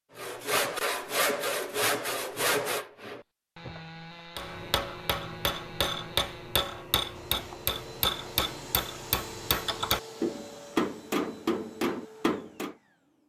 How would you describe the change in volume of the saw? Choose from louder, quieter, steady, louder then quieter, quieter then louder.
quieter.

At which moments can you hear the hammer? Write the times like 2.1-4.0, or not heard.
4.3-12.8.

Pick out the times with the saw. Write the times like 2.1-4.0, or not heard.
0.1-6.7.